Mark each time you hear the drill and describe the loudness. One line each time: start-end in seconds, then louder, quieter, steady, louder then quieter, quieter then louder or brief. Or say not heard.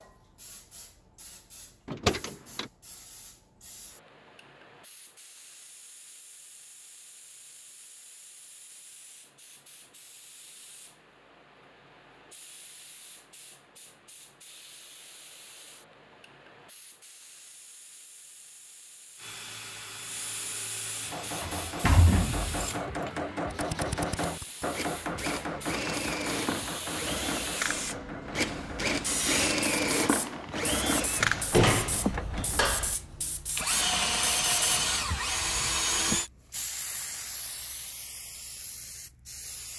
19.1-36.3 louder.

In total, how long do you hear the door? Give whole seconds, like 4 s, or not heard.
4 s.